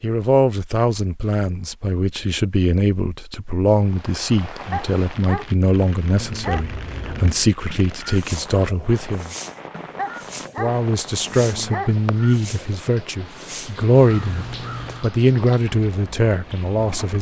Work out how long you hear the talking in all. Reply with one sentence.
You can hear the talking for 16 seconds altogether.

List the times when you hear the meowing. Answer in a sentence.
The meowing can't be heard in this clip.